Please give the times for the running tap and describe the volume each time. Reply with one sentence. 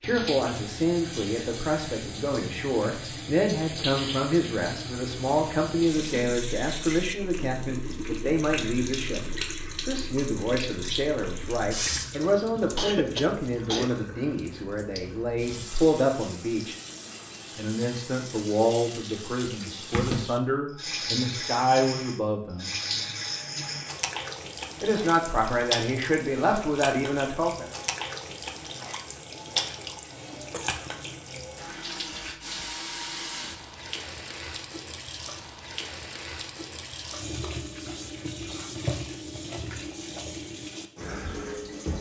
The running tap can be heard from 0.0 to 41.9 s, at a steady volume.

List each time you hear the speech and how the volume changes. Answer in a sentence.
The speech can be heard from 0.0 to 16.8 s, at a steady volume; from 17.6 to 22.8 s, getting quieter then louder; and briefly from 24.8 to 27.8 s.